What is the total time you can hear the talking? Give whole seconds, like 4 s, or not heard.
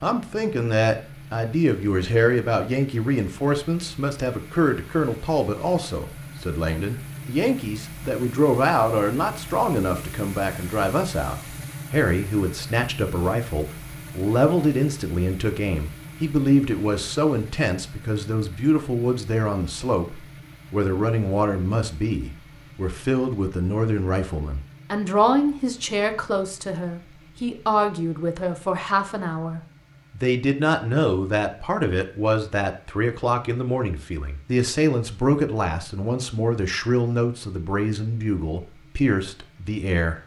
40 s.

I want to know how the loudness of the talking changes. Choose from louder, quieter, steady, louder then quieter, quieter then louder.
steady.